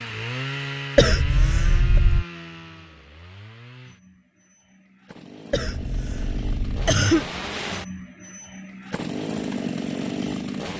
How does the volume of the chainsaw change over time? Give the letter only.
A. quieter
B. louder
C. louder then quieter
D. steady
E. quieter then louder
E.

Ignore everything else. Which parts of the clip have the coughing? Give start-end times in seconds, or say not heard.
0.9-2.2, 5.5-7.3.